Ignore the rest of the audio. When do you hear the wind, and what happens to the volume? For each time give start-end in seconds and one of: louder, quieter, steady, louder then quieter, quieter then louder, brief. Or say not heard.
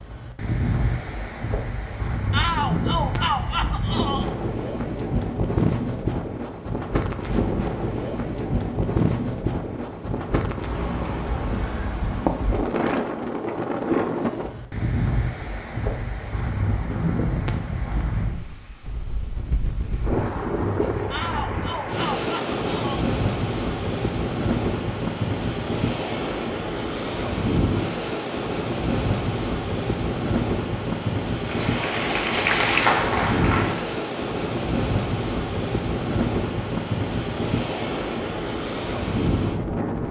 0.0-40.0 steady.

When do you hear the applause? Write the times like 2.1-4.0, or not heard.
31.4-33.9.